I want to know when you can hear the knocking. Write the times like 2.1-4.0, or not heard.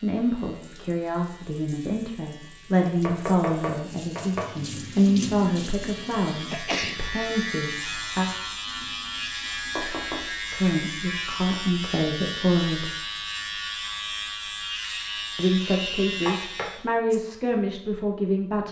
3.0-4.5, 9.8-10.3, 16.2-17.1.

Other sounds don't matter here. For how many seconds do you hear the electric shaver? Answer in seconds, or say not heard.
17 s.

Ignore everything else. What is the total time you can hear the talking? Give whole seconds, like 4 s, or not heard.
14 s.